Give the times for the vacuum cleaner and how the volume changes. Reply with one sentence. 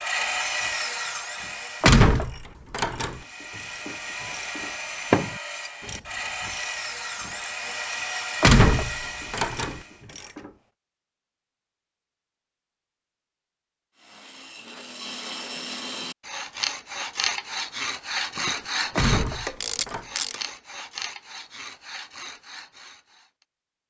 You can't hear the vacuum cleaner here.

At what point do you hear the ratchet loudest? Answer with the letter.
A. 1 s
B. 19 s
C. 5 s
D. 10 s
C.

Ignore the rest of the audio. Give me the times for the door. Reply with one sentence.
You can hear the door from 1.8 to 3.2 s, from 8.4 to 9.8 s and from 18.9 to 20.1 s.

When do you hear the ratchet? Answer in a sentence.
The ratchet can be heard from 0.1 to 10.5 s and from 18.4 to 20.4 s.